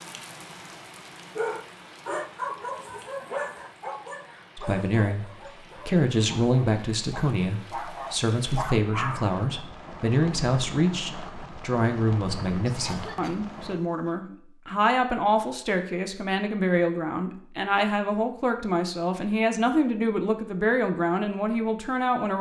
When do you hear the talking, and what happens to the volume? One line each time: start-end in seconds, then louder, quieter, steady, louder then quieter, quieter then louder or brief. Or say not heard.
4.5-5.2 brief
5.8-22.3 steady.